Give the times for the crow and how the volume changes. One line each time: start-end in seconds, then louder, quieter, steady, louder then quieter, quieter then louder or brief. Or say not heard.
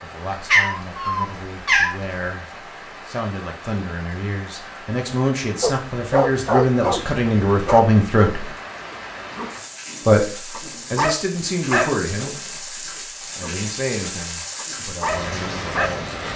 not heard.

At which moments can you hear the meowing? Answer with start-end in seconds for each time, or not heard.
0.3-1.9.